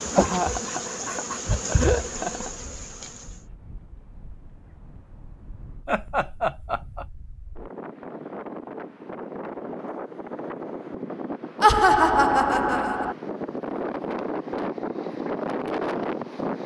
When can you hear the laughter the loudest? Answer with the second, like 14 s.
12 s.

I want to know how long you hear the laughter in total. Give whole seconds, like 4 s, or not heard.
5 s.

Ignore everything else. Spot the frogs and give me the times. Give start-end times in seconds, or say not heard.
not heard.